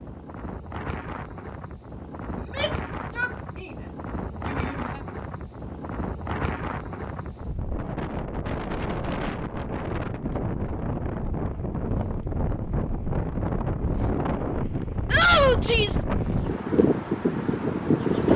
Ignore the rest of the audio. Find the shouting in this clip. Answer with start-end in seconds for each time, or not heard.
2.4-3.8, 4.3-5.0, 15.1-16.1.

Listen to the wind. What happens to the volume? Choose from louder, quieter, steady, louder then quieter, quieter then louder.
louder.